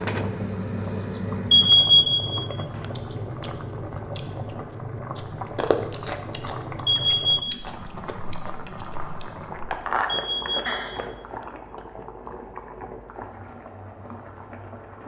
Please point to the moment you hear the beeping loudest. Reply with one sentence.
The volume of the beeping peaks at 2 seconds.